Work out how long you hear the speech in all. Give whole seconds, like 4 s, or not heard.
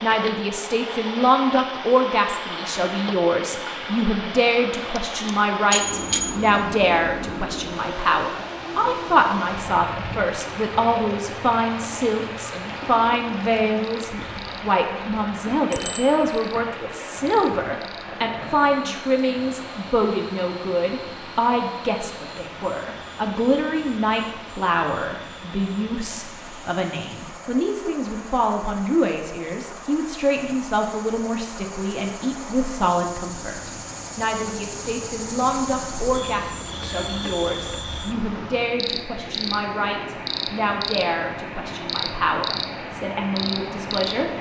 44 s.